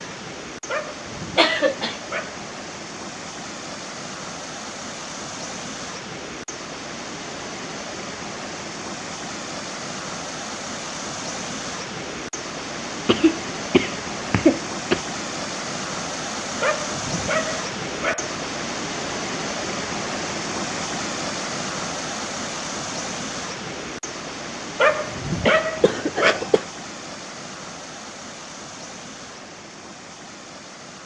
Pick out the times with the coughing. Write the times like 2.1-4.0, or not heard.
1.1-2.0, 13.1-15.1, 25.4-26.6.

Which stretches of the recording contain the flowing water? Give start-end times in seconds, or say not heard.
0.0-31.0.